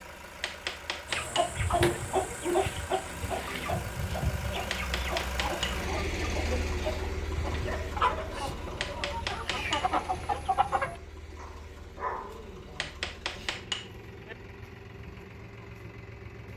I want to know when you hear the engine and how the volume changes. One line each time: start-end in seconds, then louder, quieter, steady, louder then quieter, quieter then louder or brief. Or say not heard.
0.0-16.5 louder then quieter.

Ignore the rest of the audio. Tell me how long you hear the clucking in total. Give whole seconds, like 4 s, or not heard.
10 s.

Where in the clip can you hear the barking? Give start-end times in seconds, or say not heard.
1.8-3.8, 7.7-9.2, 11.3-12.8.